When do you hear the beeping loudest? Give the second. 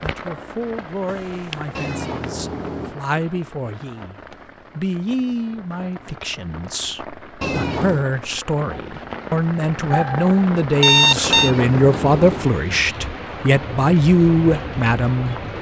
11 s.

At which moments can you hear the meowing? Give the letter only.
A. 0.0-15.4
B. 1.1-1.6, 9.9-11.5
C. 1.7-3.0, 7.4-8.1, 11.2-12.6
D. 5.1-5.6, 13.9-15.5
C.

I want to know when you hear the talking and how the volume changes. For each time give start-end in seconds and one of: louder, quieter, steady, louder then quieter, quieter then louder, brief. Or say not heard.
0.0-15.4 louder.